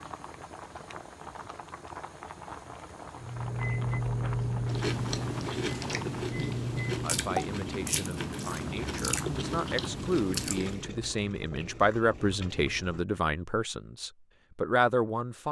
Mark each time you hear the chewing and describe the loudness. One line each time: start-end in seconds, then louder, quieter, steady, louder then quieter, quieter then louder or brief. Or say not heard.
4.6-10.9 steady.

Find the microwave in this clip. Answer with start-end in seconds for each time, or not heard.
3.1-7.1.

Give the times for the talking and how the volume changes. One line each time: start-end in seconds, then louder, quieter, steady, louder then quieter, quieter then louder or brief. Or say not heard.
7.0-15.4 louder.